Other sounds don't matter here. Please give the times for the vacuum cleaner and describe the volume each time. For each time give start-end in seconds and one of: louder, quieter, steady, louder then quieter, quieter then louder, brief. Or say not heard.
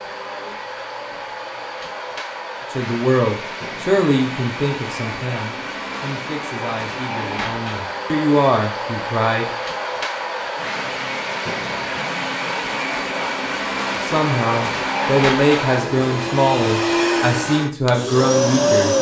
0.0-18.9 louder.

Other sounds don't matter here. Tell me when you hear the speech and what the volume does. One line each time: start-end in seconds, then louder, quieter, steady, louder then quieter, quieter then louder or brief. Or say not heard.
2.7-9.5 quieter then louder
13.9-18.9 steady.